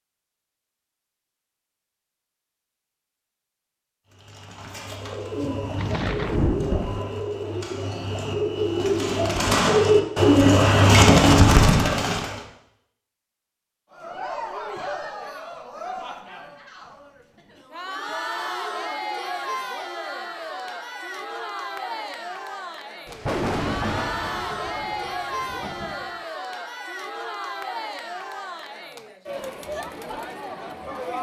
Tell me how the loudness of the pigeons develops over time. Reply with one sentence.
The volume of the pigeons goes up.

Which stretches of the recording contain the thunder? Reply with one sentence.
You can hear the thunder from 5.4 to 7.0 s and from 23.1 to 26.1 s.